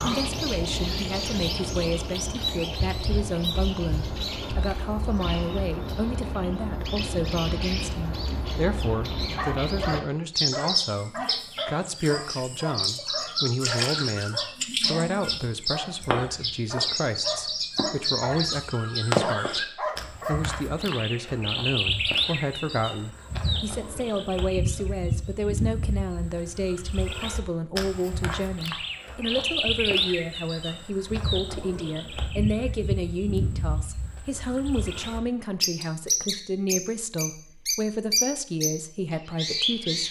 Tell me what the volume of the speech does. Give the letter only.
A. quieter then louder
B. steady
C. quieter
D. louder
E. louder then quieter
B.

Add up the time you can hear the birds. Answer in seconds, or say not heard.
40 s.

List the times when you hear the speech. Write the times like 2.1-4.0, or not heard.
0.0-40.0.